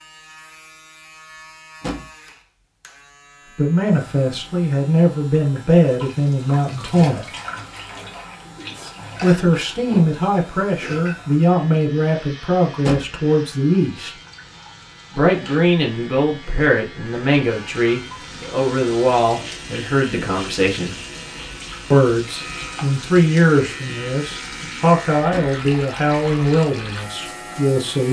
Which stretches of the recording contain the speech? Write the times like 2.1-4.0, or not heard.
3.5-7.2, 9.2-14.2, 15.2-20.9, 21.9-28.0.